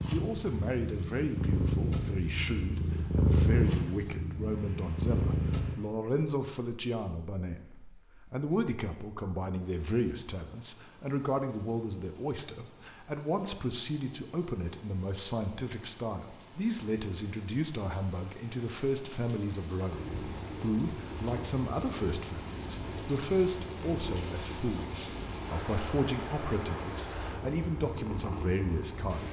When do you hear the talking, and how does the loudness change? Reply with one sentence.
You can hear the talking from 0.1 to 29.2 s, at a steady volume.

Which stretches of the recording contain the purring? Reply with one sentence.
You can hear the purring from 0.0 to 5.8 s and from 19.9 to 29.2 s.